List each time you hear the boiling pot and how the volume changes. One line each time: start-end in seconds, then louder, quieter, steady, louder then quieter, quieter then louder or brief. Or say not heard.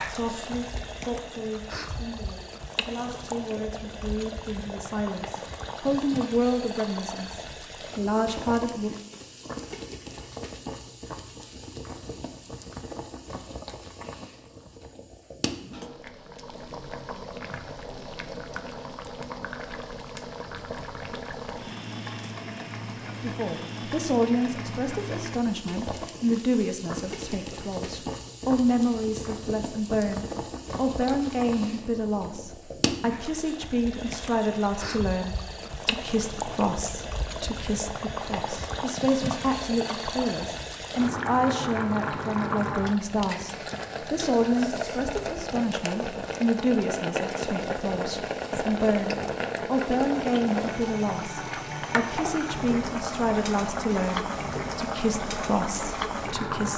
0.0-56.7 louder.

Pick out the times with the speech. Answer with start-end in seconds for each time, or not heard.
0.0-8.9, 23.2-56.7.